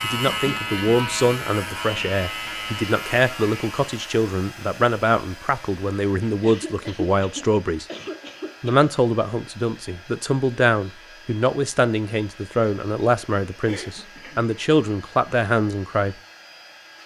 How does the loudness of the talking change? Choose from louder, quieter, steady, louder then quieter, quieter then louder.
steady.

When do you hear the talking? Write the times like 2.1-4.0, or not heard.
0.0-7.8, 8.6-16.1.